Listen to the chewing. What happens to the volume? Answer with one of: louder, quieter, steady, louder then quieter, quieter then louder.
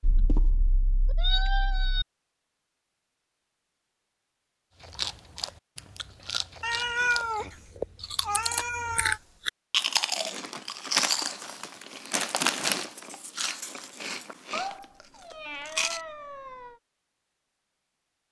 louder then quieter.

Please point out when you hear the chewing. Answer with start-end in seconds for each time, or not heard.
4.8-16.0.